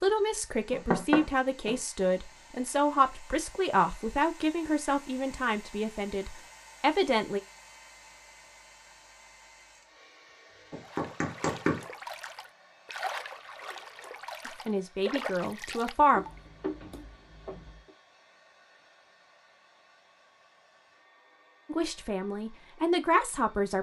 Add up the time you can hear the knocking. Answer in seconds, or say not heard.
4 s.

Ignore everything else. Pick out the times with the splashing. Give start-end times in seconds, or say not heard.
10.8-17.1.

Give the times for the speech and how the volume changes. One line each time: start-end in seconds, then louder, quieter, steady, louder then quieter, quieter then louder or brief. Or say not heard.
0.0-7.4 steady
14.4-16.2 brief
21.7-23.7 brief.